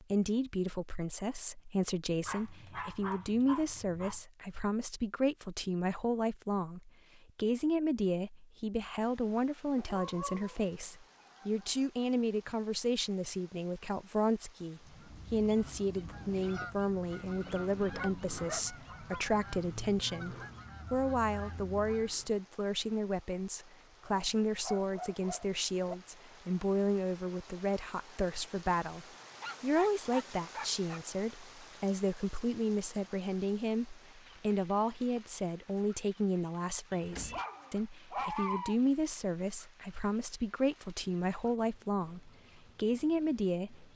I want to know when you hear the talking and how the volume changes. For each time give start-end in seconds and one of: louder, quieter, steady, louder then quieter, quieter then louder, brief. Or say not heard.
0.0-43.9 steady.